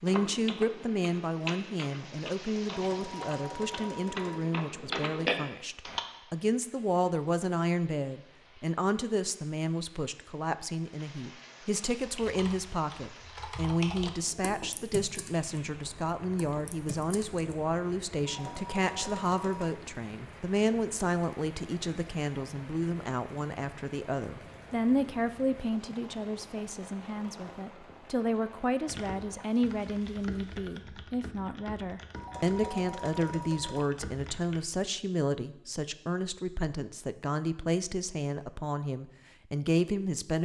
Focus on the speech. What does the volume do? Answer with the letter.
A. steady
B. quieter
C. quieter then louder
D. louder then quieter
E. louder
A.